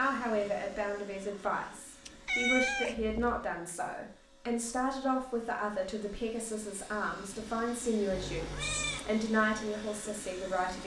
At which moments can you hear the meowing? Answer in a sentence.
You can hear the meowing from 2.0 to 3.4 s and from 8.1 to 9.1 s.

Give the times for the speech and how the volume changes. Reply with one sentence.
The speech can be heard from 0.0 to 10.8 s, at a steady volume.